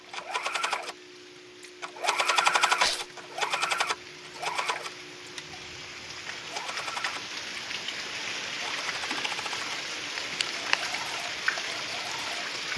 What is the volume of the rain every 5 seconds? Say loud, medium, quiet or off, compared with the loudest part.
quiet, loud, loud.